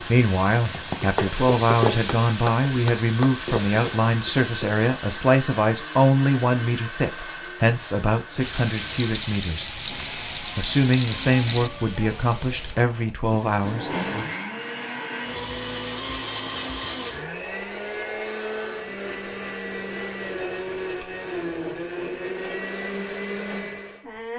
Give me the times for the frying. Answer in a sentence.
You can hear the frying from 0.0 to 5.0 s and from 8.3 to 14.4 s.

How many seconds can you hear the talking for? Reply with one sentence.
You can hear the talking for 13 seconds altogether.